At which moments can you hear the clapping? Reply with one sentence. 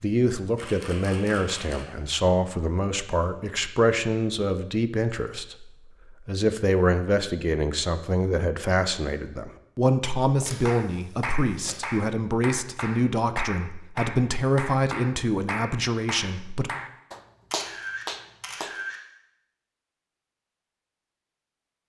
The clapping can be heard from 10.2 to 18.8 s.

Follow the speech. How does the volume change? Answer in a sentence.
The loudness of the speech stays about the same.